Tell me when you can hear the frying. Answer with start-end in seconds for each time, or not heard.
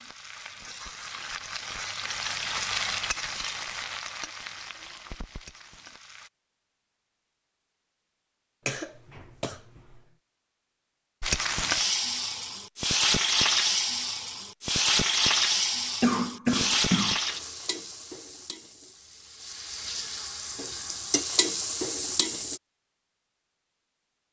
0.0-6.3, 11.2-22.6.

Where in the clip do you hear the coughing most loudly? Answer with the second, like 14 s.
16 s.